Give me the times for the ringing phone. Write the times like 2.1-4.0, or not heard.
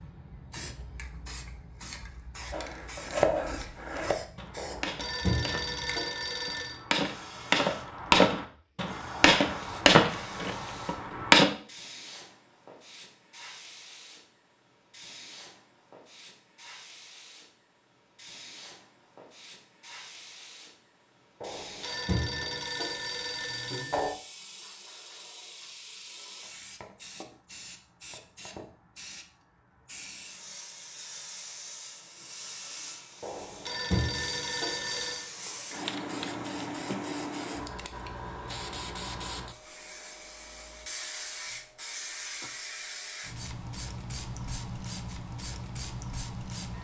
4.5-6.8, 21.4-24.1, 33.2-35.3.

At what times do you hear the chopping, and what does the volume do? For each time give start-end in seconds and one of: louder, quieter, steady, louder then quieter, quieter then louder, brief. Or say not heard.
2.5-11.4 quieter then louder.